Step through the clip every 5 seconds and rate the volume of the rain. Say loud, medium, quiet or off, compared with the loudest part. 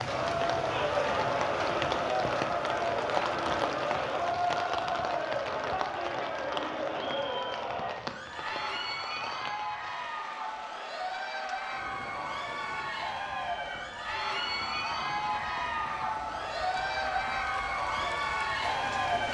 loud, medium, quiet, medium.